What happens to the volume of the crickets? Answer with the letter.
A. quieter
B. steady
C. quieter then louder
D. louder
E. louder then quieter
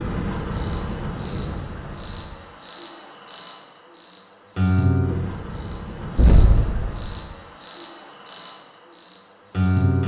B.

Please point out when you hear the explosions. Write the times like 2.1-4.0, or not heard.
6.2-7.1.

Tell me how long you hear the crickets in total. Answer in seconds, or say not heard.
10 s.